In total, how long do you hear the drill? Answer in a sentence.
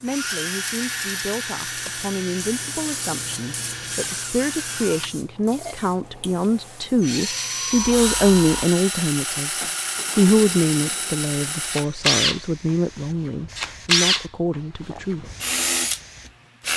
The drill can be heard for 17 seconds in total.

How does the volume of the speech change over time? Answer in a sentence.
The volume of the speech goes up, then down.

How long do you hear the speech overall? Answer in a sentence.
The speech can be heard for 15 seconds in total.